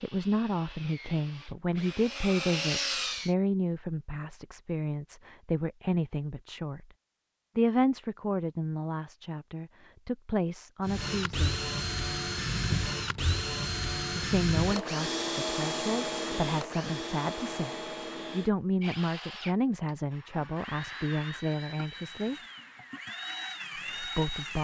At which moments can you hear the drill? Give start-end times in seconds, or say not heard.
0.0-3.4, 10.8-24.5.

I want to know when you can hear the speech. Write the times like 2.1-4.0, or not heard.
0.0-6.8, 7.5-11.6, 14.2-22.4, 23.9-24.5.